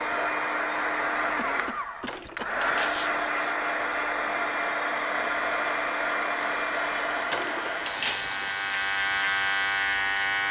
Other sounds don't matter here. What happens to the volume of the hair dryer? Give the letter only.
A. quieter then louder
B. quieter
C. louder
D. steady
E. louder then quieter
B.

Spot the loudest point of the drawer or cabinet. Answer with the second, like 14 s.
8 s.